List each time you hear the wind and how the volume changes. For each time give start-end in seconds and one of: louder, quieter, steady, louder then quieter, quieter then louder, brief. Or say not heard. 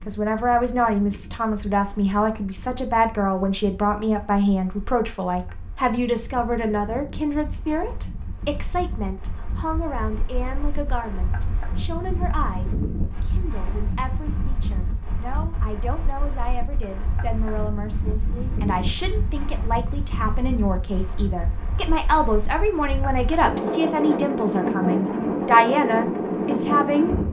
0.0-27.2 louder.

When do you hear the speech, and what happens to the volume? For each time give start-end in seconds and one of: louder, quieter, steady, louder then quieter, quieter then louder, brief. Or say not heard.
0.1-27.1 quieter then louder.